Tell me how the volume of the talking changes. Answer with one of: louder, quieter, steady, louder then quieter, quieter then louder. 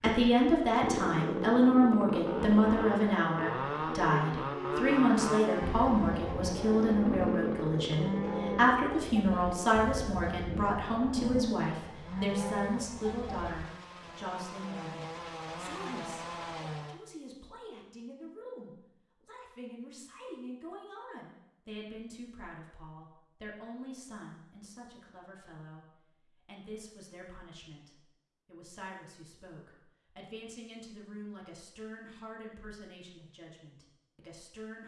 quieter.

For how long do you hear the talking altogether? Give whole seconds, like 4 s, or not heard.
35 s.